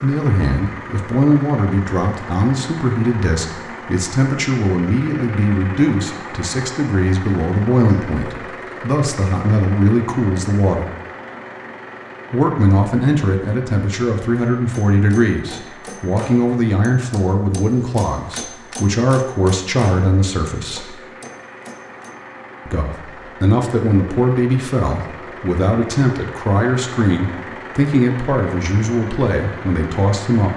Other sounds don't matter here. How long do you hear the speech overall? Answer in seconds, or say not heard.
27 s.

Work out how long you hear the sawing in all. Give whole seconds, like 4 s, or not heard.
not heard.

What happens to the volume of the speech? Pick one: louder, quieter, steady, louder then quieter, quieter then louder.
steady.